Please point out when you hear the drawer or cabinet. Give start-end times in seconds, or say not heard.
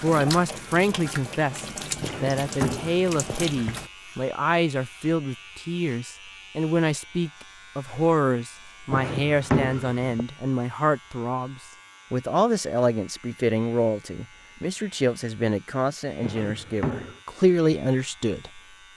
2.0-3.8, 8.9-10.0, 16.2-17.2.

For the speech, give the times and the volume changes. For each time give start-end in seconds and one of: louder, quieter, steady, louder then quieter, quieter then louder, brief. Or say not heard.
0.0-18.6 steady.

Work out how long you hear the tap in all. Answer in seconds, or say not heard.
4 s.